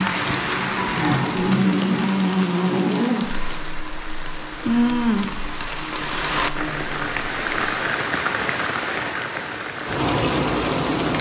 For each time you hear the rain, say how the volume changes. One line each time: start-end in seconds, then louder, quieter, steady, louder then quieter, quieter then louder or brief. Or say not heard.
0.0-11.1 quieter then louder.